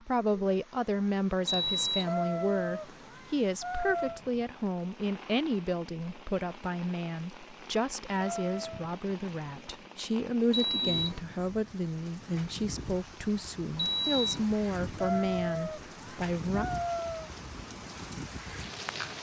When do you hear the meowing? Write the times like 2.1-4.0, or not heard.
2.0-4.2, 8.2-8.9, 14.9-17.3.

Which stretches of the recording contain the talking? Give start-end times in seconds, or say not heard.
0.1-16.6.